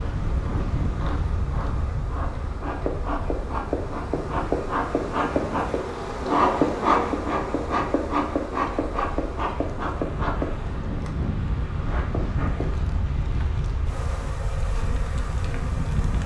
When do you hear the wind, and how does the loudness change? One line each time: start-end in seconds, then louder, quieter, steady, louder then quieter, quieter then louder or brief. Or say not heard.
0.0-16.2 quieter then louder.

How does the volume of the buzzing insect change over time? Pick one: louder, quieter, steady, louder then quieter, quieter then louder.
louder then quieter.